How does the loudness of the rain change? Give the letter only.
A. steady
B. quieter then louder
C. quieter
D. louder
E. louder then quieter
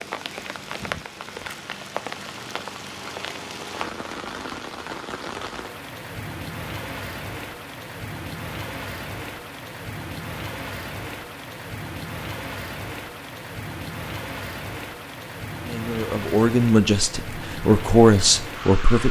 A.